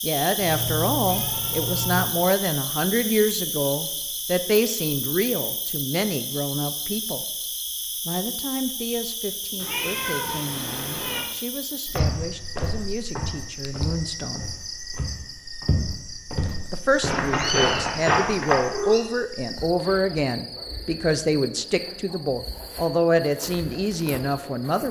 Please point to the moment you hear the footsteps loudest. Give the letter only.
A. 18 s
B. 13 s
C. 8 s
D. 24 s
A.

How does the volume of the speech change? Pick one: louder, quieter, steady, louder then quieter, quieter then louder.
quieter then louder.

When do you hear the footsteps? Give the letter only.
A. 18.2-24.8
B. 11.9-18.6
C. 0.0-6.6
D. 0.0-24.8
B.